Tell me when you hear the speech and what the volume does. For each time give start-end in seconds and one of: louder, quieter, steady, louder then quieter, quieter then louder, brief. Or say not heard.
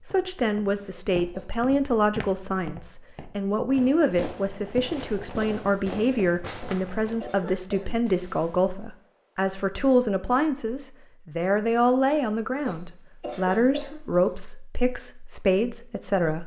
0.1-16.4 steady.